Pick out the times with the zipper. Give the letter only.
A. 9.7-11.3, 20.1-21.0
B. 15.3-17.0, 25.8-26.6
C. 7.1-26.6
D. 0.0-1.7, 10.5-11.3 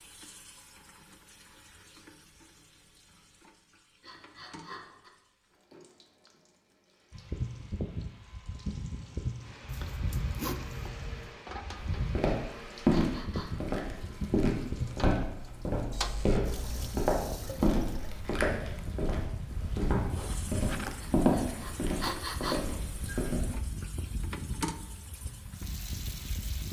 A.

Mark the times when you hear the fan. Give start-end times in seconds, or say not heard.
7.1-26.6.